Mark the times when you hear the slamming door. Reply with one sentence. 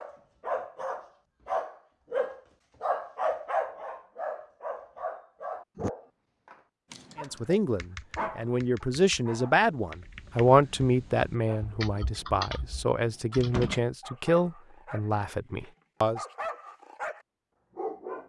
The slamming door can be heard from 13.4 to 13.8 s.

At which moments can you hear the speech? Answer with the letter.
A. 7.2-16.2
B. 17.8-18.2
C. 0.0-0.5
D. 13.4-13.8
A.